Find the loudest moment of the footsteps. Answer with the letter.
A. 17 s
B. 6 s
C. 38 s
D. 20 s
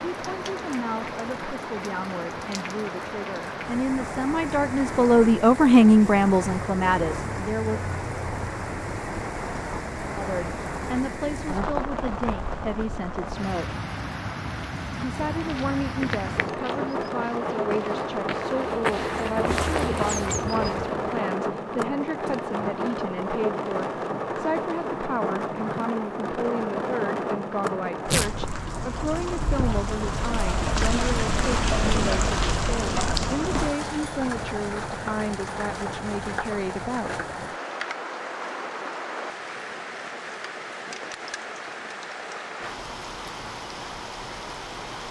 D.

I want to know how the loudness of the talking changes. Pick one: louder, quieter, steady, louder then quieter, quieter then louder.
quieter.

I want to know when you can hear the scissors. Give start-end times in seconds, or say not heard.
not heard.